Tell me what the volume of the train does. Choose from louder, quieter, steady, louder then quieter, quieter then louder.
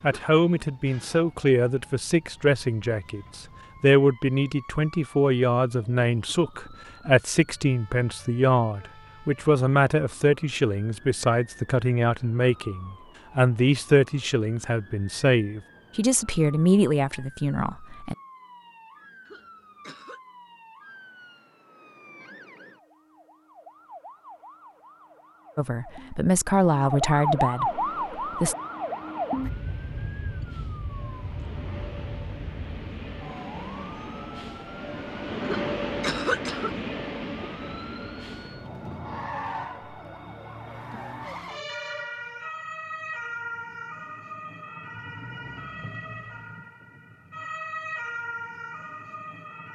louder then quieter.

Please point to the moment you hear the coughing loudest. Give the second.
36 s.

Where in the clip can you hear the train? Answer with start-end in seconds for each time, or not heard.
27.6-39.7.